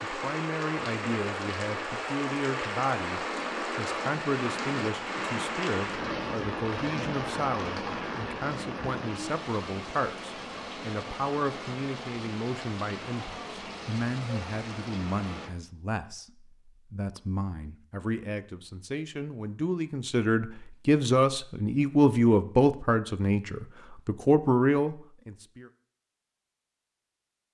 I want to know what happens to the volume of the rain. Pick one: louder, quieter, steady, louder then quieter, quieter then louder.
quieter.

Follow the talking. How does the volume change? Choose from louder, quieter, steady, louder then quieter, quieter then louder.
louder.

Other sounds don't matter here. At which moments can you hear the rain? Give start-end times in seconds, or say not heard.
0.0-15.5.